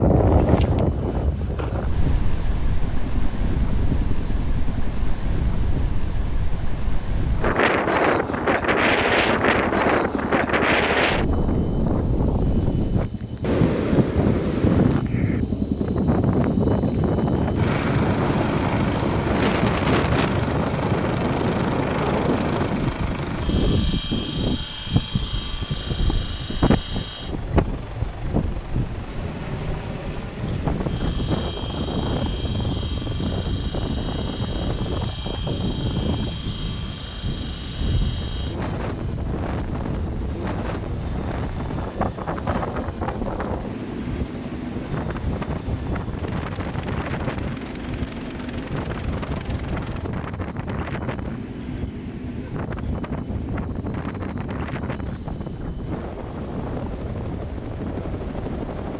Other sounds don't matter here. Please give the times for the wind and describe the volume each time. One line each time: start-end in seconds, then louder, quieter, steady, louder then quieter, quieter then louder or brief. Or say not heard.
0.0-58.9 quieter.